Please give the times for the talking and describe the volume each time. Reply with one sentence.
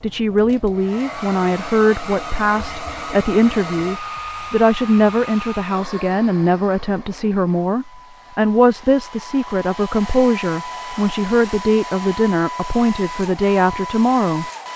The talking can be heard from 0.0 to 14.7 s, at a steady volume.